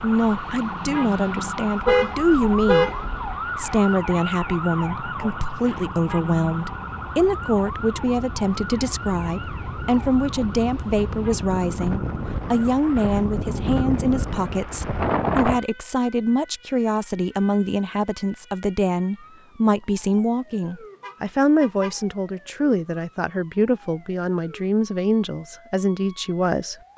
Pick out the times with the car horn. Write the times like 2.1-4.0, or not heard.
1.9-3.3, 21.0-21.9.